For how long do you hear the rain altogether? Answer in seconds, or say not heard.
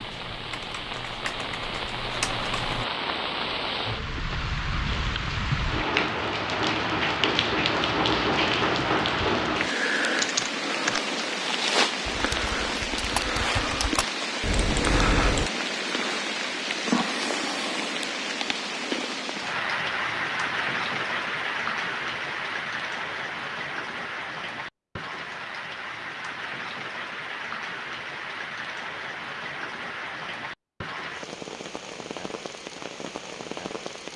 34 s.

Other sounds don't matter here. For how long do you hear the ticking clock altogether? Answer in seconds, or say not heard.
not heard.